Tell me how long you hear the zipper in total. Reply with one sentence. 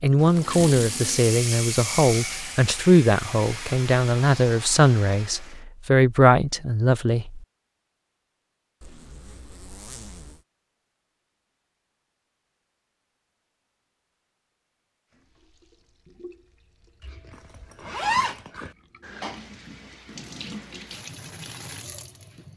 The zipper can be heard for 4 seconds in total.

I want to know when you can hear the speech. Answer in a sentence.
The speech can be heard from 0.0 to 7.4 s.